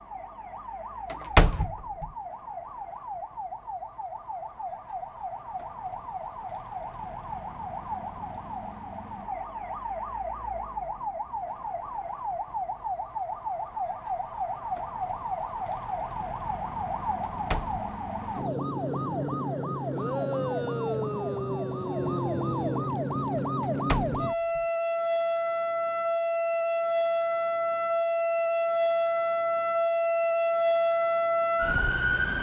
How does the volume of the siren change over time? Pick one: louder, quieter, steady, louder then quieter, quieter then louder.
louder.